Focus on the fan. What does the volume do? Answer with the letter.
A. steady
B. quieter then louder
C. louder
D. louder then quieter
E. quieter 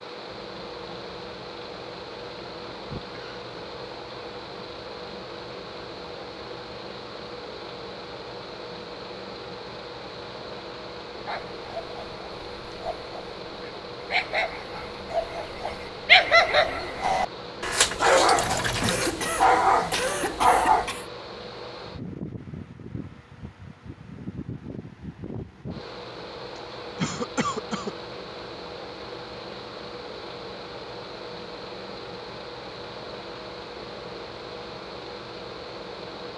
A.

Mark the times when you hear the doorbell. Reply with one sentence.
The doorbell can't be heard in this clip.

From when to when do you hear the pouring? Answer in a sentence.
The pouring can be heard from 18.4 to 19.1 s.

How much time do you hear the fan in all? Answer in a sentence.
You can hear the fan for 36 seconds altogether.